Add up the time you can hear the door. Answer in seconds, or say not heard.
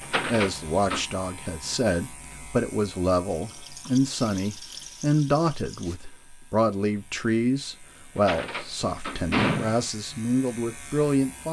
3 s.